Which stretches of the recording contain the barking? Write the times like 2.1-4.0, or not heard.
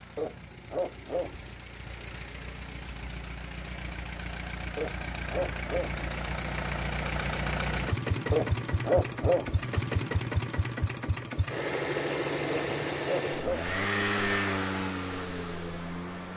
0.1-1.5, 4.8-6.0, 8.3-9.7, 12.5-13.8.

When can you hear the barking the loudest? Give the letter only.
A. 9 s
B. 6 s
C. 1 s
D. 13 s
A.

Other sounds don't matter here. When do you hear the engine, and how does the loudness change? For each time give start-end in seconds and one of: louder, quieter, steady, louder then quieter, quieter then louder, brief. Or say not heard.
0.0-16.3 louder.